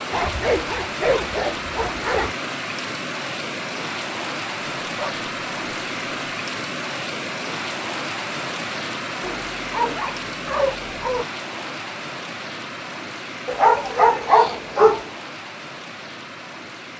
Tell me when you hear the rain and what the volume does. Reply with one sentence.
The rain can be heard from 0.0 to 16.9 s, getting quieter.